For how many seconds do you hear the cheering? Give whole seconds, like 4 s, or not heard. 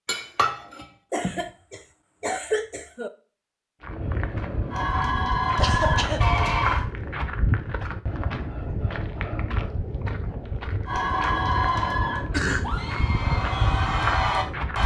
6 s.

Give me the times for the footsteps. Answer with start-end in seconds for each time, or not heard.
3.8-14.8.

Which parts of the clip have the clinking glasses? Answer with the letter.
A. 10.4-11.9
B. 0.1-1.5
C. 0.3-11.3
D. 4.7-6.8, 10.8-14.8
B.